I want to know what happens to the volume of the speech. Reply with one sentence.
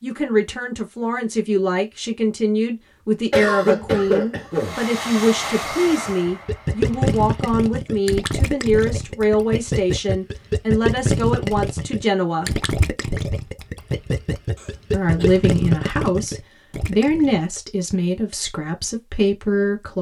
The volume of the speech stays about the same.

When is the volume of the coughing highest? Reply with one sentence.
The loudest moment of the coughing is at 4 seconds.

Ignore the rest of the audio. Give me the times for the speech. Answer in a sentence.
You can hear the speech from 0.0 to 12.6 s and from 14.9 to 19.9 s.